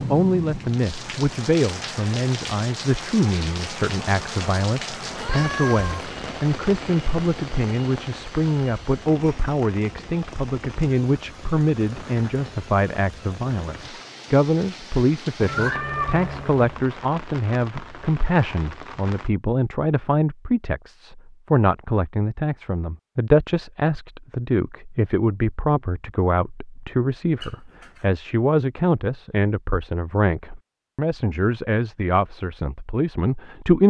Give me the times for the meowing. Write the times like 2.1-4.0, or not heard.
5.2-6.0, 15.4-16.8, 27.4-28.1.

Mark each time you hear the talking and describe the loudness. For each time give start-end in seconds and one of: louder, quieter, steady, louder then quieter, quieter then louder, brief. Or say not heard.
0.0-33.8 steady.